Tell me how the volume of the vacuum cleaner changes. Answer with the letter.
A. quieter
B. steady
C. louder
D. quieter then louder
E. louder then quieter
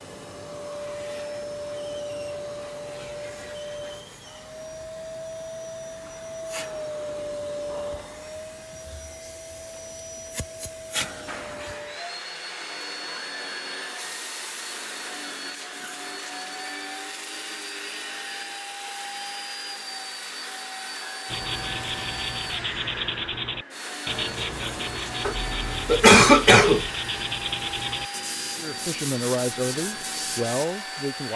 B.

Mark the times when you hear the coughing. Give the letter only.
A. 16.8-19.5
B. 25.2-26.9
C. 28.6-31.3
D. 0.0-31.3
B.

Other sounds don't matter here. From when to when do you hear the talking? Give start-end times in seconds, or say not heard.
28.6-31.3.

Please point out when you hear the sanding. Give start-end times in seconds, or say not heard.
21.2-30.6.